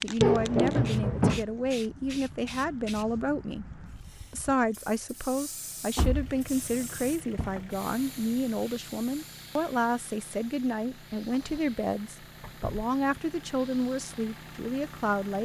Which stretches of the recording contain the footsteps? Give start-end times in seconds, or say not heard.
not heard.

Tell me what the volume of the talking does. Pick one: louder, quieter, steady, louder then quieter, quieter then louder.
steady.